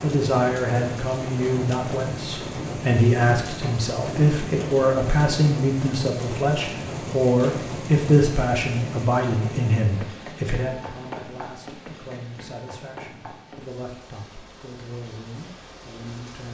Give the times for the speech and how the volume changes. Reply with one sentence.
You can hear the speech from 0.0 to 16.5 s, getting quieter.